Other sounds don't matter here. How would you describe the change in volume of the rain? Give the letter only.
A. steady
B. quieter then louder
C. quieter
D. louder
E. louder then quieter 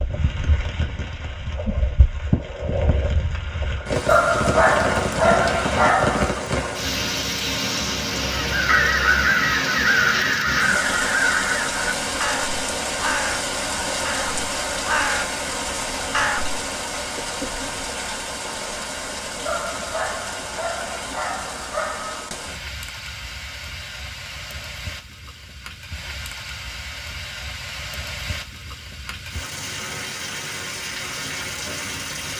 C.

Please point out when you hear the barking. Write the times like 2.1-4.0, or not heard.
4.0-6.4, 19.4-22.3.